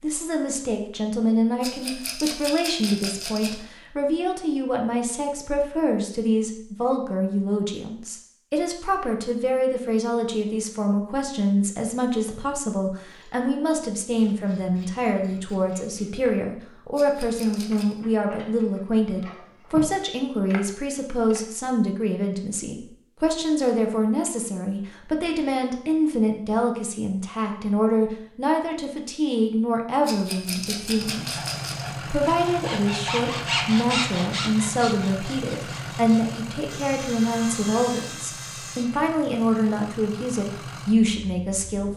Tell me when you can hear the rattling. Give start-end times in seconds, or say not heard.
1.6-3.5, 16.9-17.9, 30.1-31.9.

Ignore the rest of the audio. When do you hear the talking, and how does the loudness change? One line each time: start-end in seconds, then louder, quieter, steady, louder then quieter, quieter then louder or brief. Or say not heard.
0.0-41.9 steady.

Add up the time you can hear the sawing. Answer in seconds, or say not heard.
8 s.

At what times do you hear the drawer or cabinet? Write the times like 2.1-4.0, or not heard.
not heard.